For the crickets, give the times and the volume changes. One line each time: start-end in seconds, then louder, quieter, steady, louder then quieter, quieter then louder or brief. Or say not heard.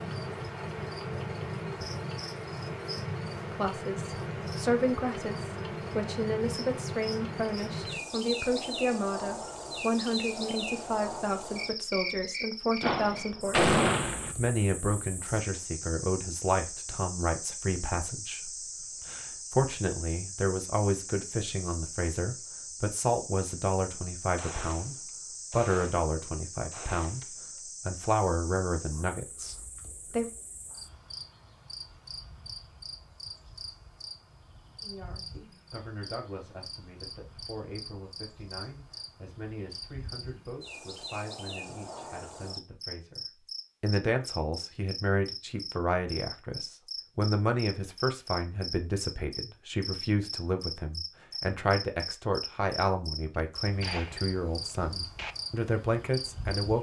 0.0-56.7 quieter then louder.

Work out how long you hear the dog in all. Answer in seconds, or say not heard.
not heard.